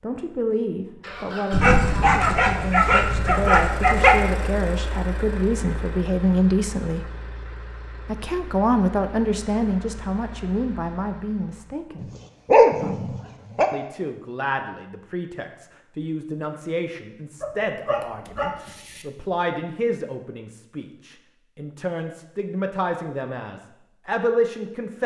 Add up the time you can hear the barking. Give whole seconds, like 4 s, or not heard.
6 s.